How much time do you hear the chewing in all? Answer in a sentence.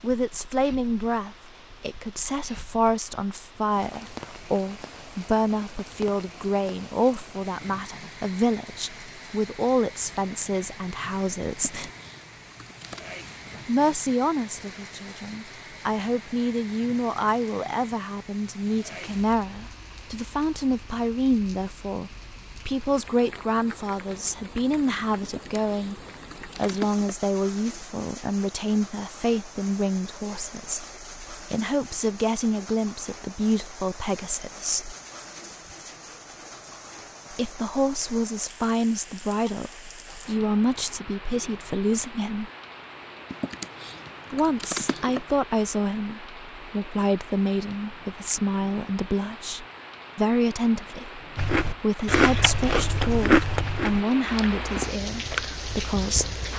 You can hear the chewing for 5 seconds altogether.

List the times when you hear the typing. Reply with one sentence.
You can hear the typing from 11.5 to 13.1 s, from 25.2 to 27.1 s and from 43.3 to 45.2 s.